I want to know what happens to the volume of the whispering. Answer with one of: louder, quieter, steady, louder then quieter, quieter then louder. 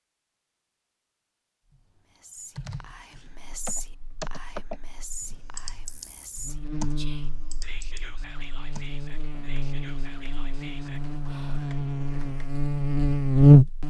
quieter.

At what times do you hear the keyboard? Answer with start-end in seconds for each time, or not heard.
1.7-12.5.